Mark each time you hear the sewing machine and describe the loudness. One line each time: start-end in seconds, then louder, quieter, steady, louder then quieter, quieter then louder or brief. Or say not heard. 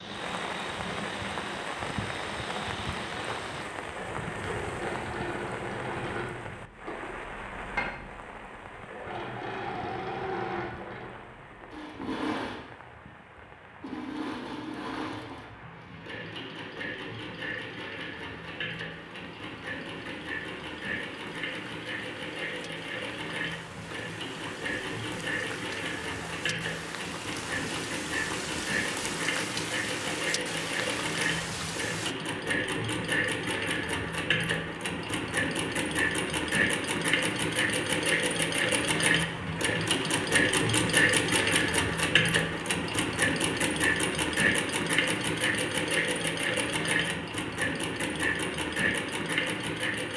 0.0-50.1 louder.